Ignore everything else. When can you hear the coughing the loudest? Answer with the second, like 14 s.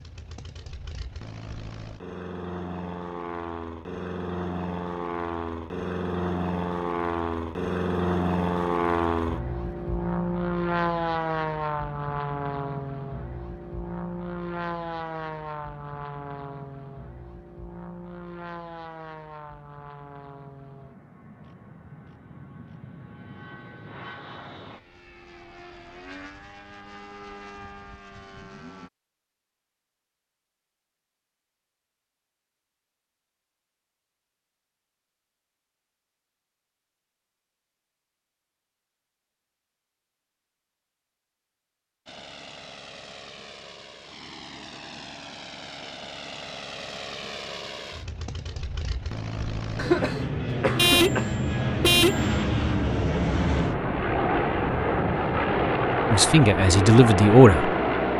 50 s.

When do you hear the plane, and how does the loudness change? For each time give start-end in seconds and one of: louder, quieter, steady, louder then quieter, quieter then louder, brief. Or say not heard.
0.0-28.9 louder then quieter
42.0-58.1 louder.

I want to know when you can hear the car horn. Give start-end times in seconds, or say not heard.
50.8-52.3.